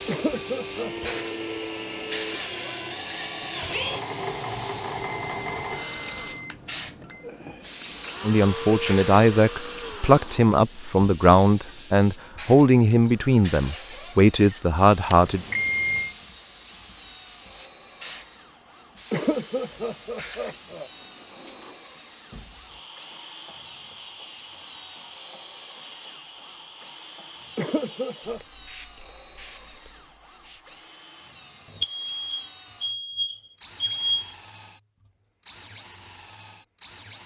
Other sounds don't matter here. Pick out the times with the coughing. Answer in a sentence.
You can hear the coughing from 0.1 to 1.2 s, from 19.1 to 20.9 s and from 27.6 to 28.4 s.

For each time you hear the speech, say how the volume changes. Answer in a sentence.
The speech can be heard from 8.2 to 15.4 s, at a steady volume.